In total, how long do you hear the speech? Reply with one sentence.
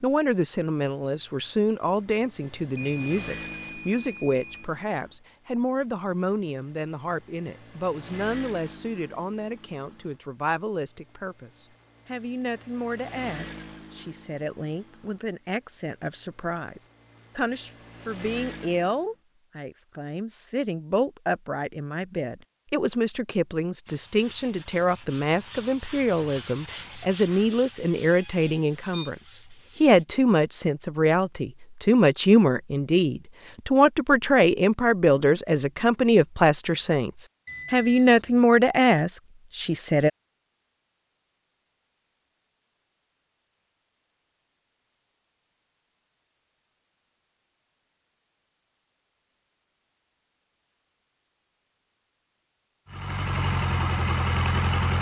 The speech can be heard for 39 seconds in total.